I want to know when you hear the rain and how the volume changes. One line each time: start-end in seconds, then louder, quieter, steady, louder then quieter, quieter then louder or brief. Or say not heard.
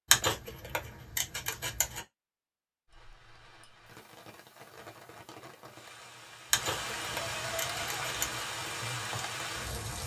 2.9-10.0 louder.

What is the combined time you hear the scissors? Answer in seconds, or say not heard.
4 s.